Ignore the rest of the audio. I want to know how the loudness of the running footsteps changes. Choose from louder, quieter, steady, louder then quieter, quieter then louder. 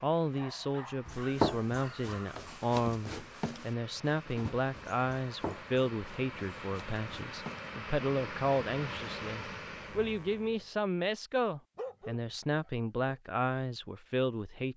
quieter.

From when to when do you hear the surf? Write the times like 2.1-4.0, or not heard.
not heard.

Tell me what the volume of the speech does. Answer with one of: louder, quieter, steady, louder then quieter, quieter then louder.
steady.